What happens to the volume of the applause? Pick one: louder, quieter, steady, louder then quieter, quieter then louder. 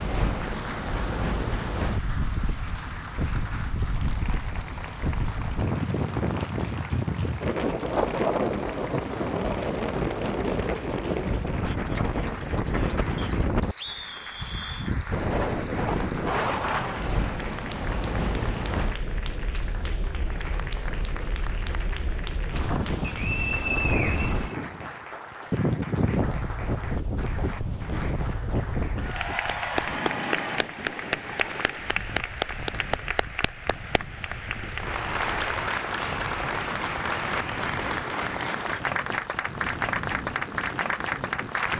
louder.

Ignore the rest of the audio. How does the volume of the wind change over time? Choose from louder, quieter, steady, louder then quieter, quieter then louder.
quieter.